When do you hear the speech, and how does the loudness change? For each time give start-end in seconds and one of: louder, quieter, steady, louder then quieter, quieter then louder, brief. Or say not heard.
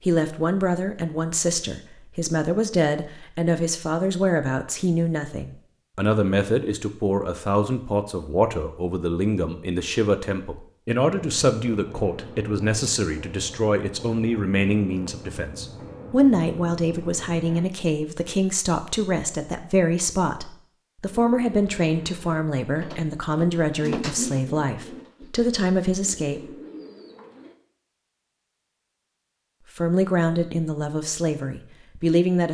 0.0-26.5 steady
29.8-32.5 brief.